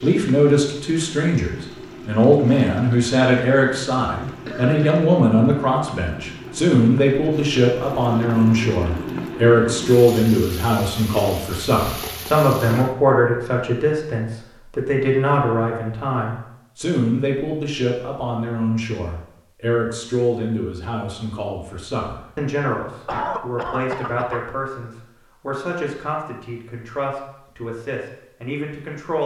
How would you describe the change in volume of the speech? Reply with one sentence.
The loudness of the speech goes down.